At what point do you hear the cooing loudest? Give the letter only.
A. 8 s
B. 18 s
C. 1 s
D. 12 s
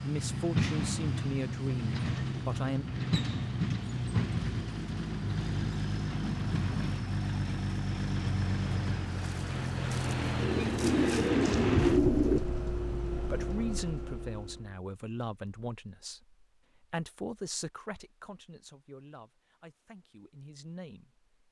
D.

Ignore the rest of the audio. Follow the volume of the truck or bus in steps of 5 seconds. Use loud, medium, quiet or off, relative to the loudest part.
loud, loud, loud, off, off.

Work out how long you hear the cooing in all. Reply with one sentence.
You can hear the cooing for 2 seconds altogether.